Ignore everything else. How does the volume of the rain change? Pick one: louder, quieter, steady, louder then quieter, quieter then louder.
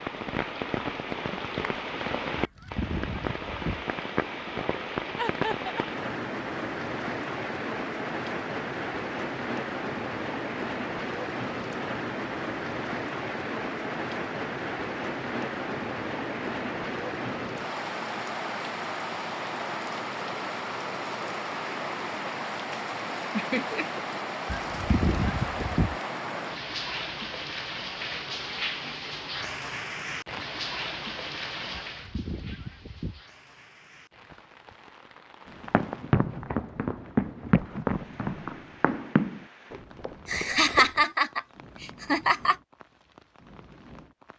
quieter.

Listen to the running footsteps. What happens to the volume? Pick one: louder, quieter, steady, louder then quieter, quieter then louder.
quieter.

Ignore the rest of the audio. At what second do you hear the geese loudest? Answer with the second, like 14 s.
25 s.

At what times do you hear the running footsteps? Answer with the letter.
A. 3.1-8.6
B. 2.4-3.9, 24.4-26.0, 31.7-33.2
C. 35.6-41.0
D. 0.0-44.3
C.